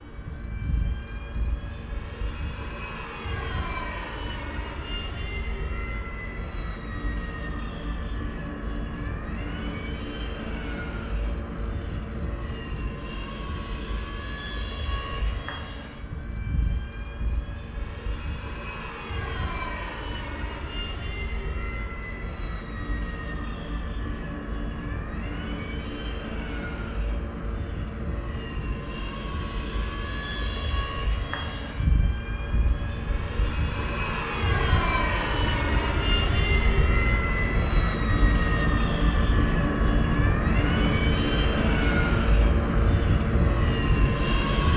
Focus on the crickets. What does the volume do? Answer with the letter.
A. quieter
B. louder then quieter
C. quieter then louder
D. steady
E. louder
B.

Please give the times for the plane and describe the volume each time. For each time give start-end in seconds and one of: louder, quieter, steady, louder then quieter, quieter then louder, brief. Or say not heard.
0.0-44.7 louder.